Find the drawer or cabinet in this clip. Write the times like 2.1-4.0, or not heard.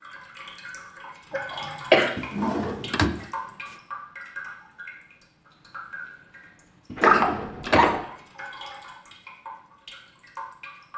2.1-3.8, 6.8-8.5.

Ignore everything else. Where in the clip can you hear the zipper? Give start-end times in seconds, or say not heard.
not heard.